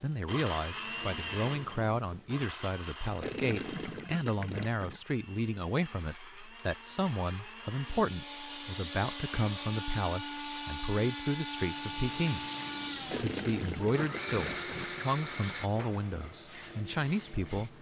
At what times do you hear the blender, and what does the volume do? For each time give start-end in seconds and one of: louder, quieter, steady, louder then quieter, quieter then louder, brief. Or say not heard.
0.1-15.7 quieter then louder.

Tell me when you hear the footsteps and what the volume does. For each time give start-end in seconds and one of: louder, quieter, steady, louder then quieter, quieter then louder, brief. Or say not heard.
not heard.